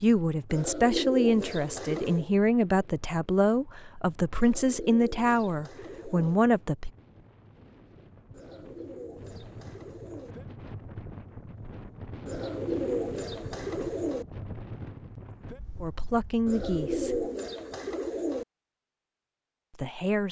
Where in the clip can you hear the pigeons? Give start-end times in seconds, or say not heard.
0.5-2.3, 4.3-6.3, 8.3-10.3, 12.2-14.2, 16.4-18.4.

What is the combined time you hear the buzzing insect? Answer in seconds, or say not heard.
not heard.